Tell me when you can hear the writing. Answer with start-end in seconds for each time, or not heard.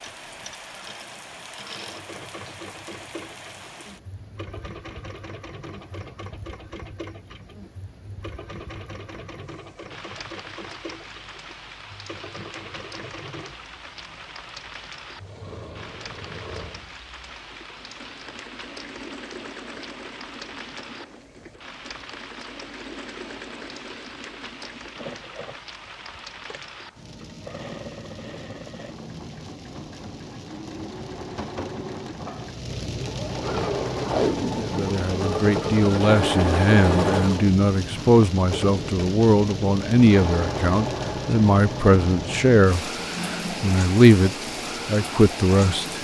not heard.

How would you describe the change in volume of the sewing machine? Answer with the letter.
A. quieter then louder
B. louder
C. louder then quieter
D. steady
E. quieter
B.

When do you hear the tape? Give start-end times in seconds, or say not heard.
34.0-34.9.